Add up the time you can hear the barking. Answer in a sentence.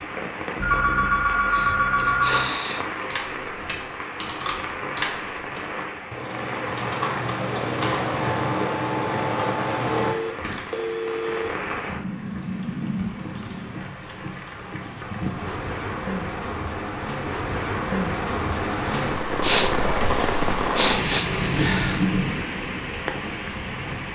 The barking can't be heard in this clip.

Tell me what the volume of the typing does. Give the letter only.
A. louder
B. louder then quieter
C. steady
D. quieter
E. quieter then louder
A.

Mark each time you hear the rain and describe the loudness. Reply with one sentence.
You can hear the rain from 0.0 to 24.1 s, getting louder.